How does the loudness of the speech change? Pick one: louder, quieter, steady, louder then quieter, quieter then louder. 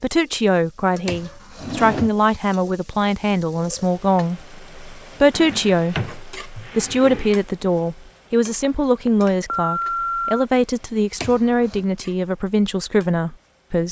steady.